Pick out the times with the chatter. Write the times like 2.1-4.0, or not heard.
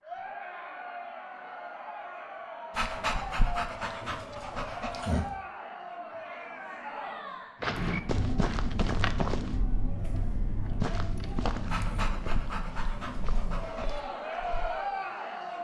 0.0-15.5.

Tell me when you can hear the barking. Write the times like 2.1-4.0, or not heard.
2.8-5.3, 11.7-14.0.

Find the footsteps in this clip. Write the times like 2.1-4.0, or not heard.
7.6-14.8.